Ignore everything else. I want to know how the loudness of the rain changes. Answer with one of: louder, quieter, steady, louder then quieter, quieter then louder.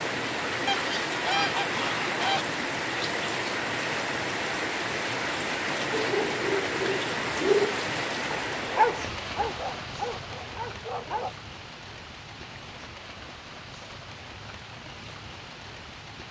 quieter.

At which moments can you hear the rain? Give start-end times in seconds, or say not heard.
0.0-16.2.